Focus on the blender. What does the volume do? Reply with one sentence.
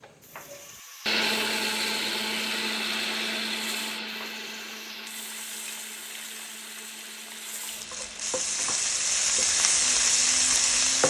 The volume of the blender goes down.